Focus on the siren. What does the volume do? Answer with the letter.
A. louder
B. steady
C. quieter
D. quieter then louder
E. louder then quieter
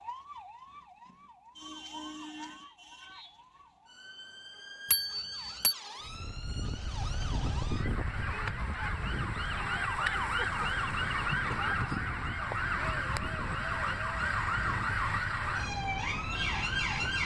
A.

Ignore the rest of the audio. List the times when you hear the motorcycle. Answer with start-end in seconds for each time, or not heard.
not heard.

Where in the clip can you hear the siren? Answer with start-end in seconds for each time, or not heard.
0.0-17.2.